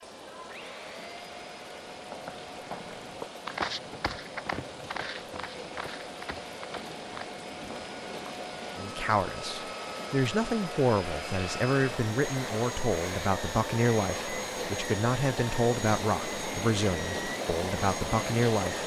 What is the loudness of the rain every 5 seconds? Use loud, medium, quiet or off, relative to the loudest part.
medium, medium, loud, loud.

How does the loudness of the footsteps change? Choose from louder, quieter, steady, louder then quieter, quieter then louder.
louder then quieter.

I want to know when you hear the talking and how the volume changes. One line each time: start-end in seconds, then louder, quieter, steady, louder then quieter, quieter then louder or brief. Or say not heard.
8.8-18.8 steady.